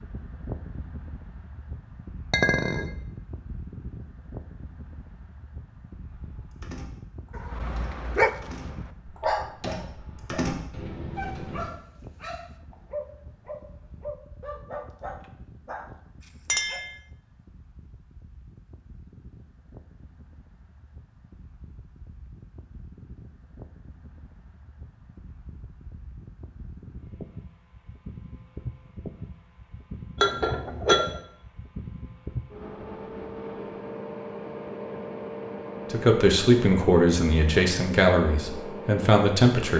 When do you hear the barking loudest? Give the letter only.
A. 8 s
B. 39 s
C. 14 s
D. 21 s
A.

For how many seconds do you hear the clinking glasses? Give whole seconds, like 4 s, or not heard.
2 s.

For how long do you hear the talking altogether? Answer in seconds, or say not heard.
4 s.